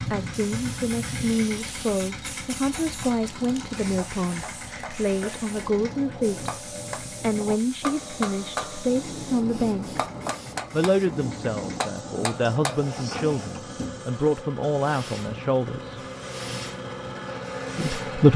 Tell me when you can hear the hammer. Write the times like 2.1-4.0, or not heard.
2.8-12.8.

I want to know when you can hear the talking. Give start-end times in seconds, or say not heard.
0.1-6.5, 7.2-10.0, 10.7-16.0, 17.8-18.3.